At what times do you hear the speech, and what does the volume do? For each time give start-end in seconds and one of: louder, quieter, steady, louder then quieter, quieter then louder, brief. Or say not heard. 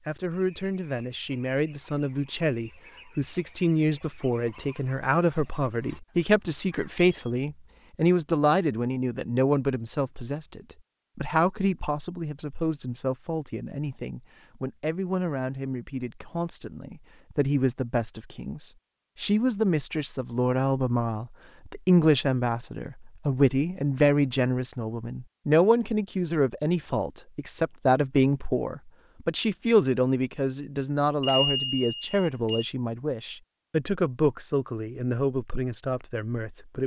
0.1-36.8 steady.